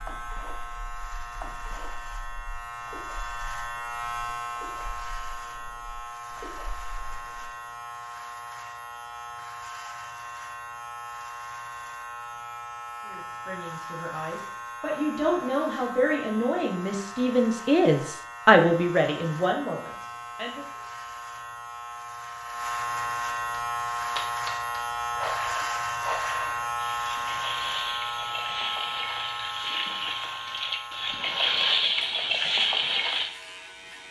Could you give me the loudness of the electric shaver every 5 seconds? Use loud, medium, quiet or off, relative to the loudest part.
medium, medium, medium, medium, loud, loud, medium.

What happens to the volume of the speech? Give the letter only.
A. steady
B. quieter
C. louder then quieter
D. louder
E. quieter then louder
C.